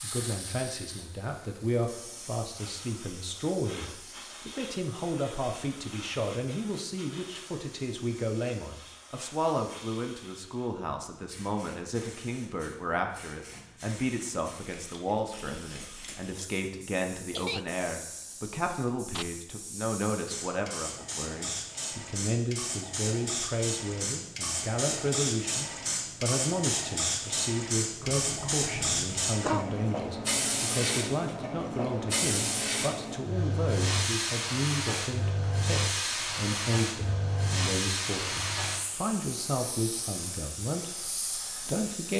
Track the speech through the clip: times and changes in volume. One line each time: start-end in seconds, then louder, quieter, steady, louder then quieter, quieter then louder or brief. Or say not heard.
0.0-42.1 steady.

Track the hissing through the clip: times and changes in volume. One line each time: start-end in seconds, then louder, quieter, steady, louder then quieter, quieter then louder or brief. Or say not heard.
0.0-42.1 louder.